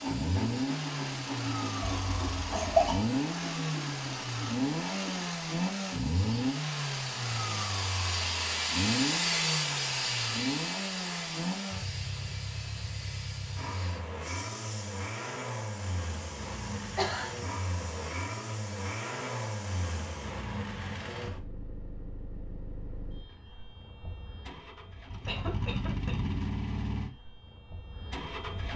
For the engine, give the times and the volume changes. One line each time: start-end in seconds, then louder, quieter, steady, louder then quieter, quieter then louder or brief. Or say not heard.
0.0-28.7 quieter.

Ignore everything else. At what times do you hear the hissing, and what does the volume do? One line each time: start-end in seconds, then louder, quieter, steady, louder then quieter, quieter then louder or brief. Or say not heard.
0.0-20.4 louder then quieter.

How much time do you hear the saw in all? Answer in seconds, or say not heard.
5 s.